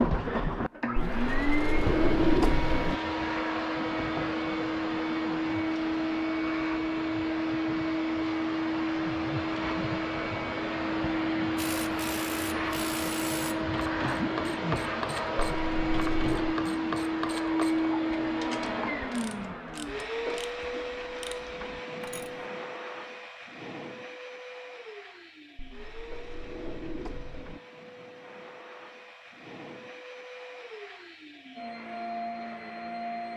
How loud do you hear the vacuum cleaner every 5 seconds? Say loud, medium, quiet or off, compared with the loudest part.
loud, loud, loud, loud, medium, quiet, medium.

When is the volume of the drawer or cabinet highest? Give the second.
2 s.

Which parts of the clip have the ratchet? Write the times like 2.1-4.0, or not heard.
11.6-22.4.